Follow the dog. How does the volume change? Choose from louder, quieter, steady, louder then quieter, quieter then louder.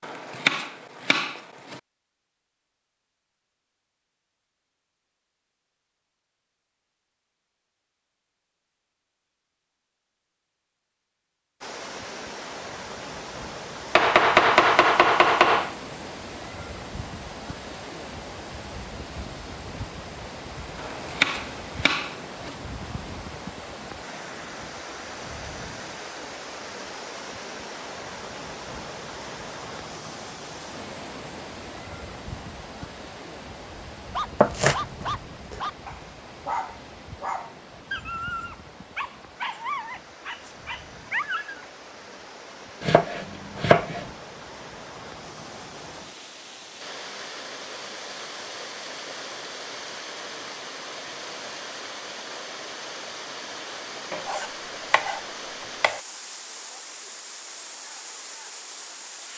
steady.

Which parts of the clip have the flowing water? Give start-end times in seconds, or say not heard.
11.6-59.3.